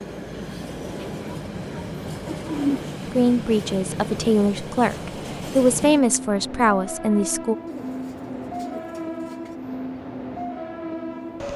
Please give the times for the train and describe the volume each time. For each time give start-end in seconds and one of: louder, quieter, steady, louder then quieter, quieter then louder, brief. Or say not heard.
0.0-11.5 steady.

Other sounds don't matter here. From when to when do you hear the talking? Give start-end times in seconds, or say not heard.
3.1-7.5.